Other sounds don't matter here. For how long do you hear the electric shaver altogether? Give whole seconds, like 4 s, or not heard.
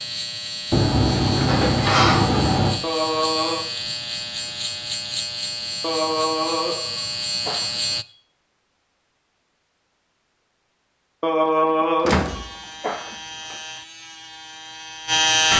11 s.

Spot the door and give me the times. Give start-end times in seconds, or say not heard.
0.7-2.8, 12.0-13.6.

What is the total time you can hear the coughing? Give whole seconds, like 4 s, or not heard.
5 s.